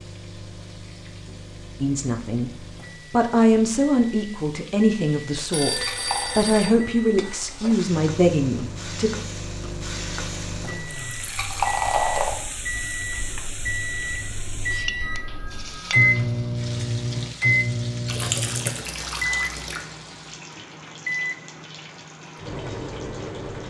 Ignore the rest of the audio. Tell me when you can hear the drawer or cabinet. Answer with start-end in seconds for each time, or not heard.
not heard.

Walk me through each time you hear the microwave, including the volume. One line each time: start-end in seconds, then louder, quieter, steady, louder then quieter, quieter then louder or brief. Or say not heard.
0.0-23.6 louder then quieter.